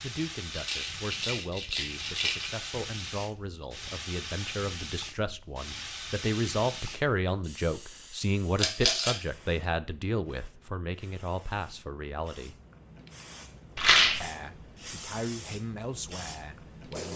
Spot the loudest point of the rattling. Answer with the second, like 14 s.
14 s.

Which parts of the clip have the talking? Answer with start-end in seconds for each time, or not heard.
0.0-12.6, 14.2-17.1.